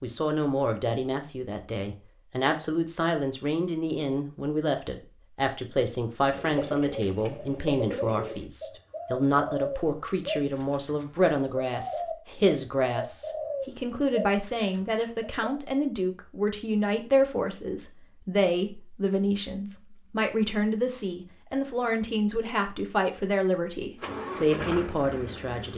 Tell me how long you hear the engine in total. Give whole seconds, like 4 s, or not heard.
2 s.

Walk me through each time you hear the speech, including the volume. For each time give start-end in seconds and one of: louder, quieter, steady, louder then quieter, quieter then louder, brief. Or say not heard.
0.0-25.7 steady.